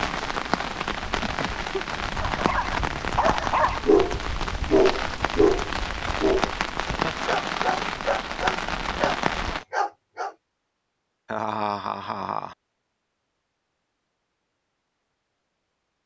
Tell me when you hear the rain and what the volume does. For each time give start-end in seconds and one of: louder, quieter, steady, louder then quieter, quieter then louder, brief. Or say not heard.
0.0-9.7 steady.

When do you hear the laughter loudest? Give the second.
12 s.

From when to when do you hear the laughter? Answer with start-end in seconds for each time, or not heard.
1.2-1.8, 6.8-7.3, 11.2-12.6.